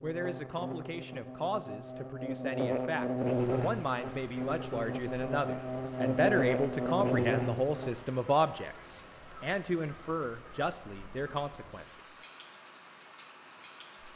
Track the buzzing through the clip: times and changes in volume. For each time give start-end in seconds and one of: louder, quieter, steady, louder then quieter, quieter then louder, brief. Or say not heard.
0.0-8.0 louder.